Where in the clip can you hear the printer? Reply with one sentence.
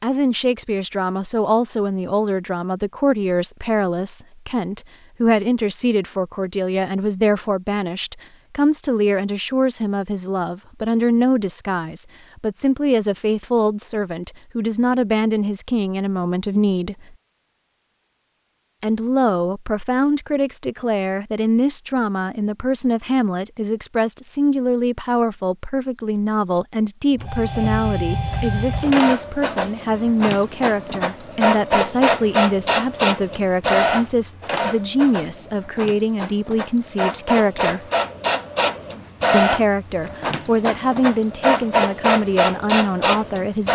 You can hear the printer from 27.1 to 43.7 s.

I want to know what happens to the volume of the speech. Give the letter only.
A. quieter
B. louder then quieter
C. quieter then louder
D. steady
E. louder
D.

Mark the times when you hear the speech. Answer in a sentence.
The speech can be heard from 0.0 to 17.1 s, from 18.8 to 37.8 s and from 39.3 to 43.7 s.